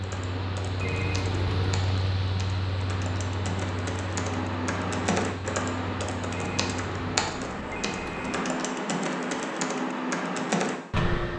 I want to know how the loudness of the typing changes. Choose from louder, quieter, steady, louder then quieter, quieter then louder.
louder.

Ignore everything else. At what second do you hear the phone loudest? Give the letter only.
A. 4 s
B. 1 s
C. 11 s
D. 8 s
B.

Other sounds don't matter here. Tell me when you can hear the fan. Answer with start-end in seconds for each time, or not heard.
0.0-7.2.